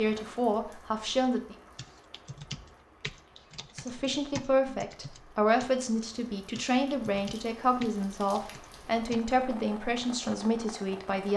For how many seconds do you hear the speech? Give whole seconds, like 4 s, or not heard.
9 s.